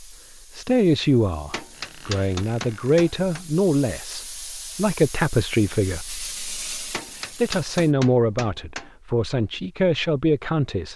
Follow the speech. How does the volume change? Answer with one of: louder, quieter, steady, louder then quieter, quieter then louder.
steady.